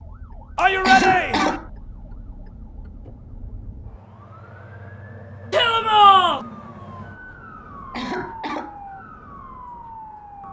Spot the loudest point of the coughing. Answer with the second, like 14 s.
1 s.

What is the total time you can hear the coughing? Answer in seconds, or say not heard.
2 s.